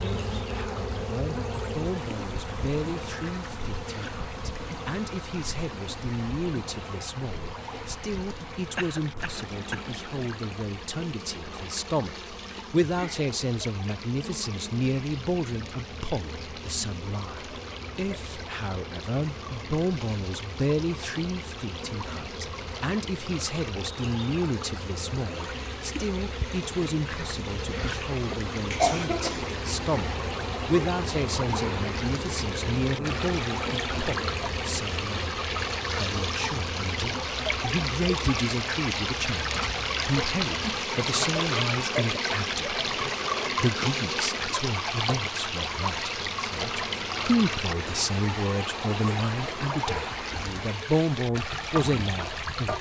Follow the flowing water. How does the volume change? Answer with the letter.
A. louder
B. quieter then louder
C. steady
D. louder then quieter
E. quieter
A.